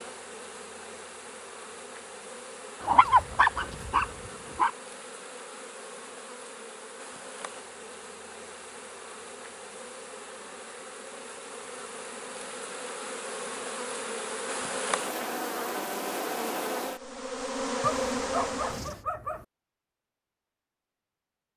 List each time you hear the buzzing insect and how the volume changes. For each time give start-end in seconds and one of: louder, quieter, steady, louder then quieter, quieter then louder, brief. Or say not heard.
0.0-19.1 louder.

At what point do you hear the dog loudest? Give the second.
3 s.